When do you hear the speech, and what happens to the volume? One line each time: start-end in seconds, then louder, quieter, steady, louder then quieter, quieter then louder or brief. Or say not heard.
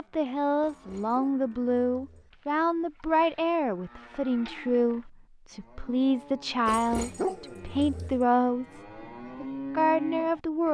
0.0-10.6 steady.